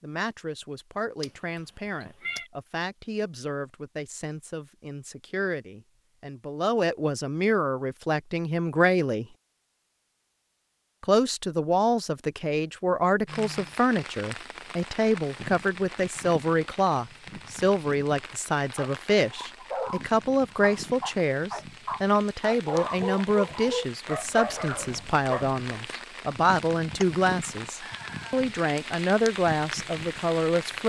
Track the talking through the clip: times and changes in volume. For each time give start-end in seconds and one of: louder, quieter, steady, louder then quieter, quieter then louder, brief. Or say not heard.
0.0-9.2 louder
11.0-30.8 steady.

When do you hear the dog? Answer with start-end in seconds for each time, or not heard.
18.8-25.6.